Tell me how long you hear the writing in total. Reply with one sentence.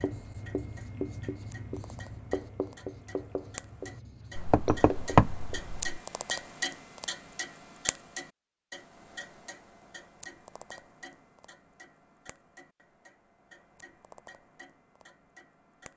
You can hear the writing for 6 seconds altogether.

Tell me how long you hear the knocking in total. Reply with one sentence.
The knocking can be heard for 2 seconds in total.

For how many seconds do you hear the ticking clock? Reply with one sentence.
You can hear the ticking clock for 16 seconds altogether.